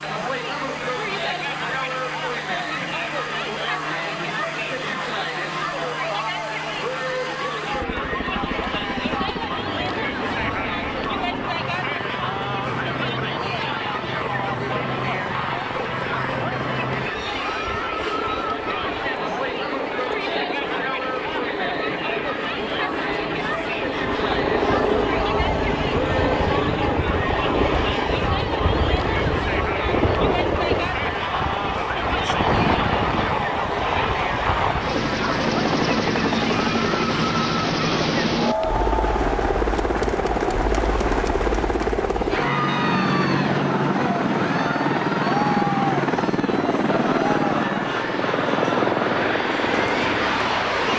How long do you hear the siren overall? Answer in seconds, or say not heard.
not heard.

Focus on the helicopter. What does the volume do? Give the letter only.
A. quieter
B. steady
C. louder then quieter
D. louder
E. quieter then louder
D.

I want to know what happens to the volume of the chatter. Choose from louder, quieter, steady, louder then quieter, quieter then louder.
steady.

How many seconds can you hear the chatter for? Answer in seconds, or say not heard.
51 s.